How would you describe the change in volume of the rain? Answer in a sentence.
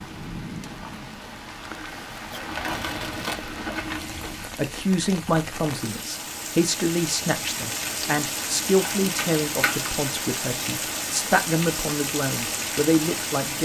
The loudness of the rain goes up.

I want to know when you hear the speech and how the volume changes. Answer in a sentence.
You can hear the speech from 4.5 to 13.6 s, at a steady volume.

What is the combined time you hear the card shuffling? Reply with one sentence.
The card shuffling can be heard for 3 seconds in total.